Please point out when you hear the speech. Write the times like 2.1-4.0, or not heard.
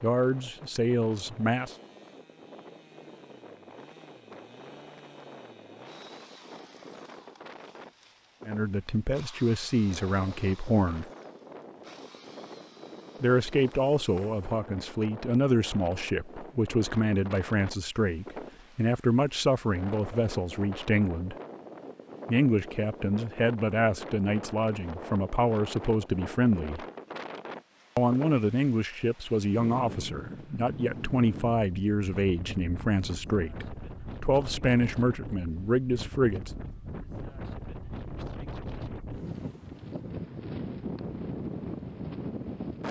0.0-1.8, 8.4-11.1, 13.2-21.4, 22.2-26.9, 27.9-36.5.